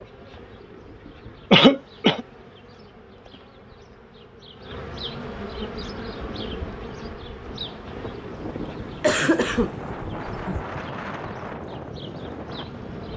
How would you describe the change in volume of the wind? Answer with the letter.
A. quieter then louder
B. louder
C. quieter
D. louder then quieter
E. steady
B.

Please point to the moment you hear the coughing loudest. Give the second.
2 s.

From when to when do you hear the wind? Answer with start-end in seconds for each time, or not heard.
5.8-13.1.